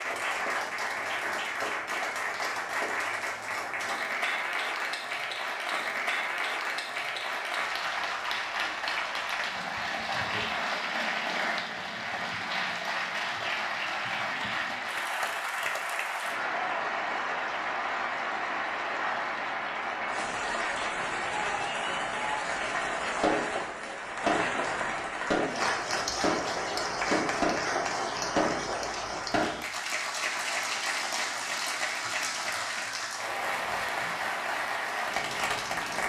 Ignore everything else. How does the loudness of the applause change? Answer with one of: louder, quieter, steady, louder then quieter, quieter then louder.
steady.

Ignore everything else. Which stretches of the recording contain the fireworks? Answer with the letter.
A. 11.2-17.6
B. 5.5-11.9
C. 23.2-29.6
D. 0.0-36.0
C.